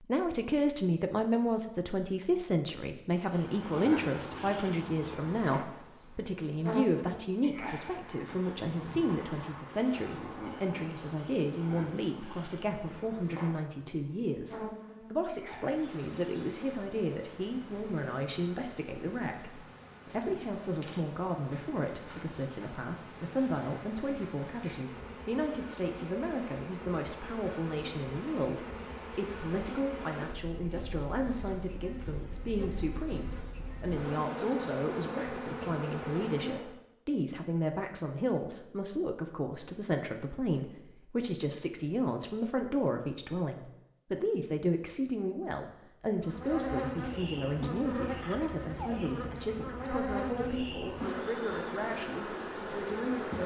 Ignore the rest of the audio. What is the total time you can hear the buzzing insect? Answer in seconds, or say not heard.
41 s.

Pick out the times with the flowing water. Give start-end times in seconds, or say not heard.
not heard.